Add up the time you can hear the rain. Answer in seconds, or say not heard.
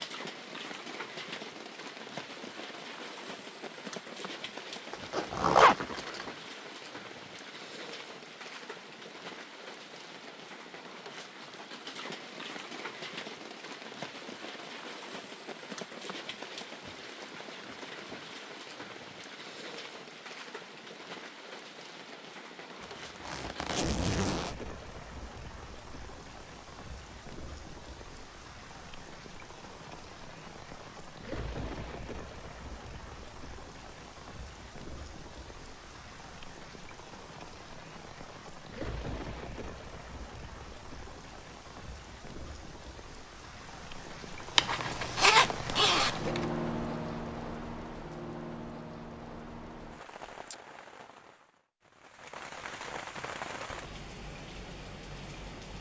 56 s.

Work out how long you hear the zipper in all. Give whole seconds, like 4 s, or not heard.
5 s.